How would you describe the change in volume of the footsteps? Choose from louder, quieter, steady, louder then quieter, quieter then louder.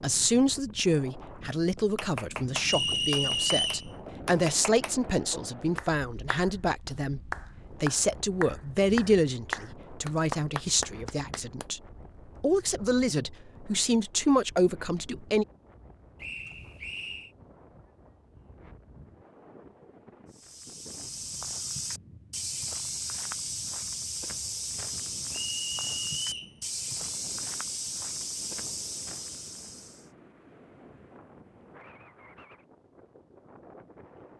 steady.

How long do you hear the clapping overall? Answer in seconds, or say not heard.
10 s.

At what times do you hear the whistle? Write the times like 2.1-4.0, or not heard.
2.6-3.9, 16.2-17.3, 25.3-26.6.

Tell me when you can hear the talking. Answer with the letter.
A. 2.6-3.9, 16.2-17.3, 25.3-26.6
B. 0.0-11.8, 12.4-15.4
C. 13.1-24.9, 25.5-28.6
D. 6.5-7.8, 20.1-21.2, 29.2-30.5
B.